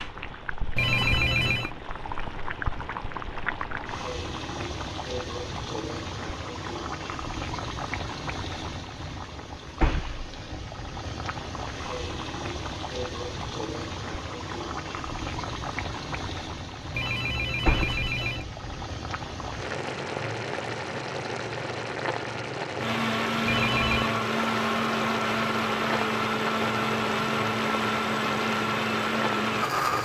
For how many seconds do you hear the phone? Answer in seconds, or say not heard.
3 s.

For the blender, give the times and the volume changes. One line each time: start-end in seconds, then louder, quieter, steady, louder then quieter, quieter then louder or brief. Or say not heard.
22.8-30.0 steady.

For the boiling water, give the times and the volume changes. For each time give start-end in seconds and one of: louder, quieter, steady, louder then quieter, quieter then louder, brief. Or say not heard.
0.0-30.0 steady.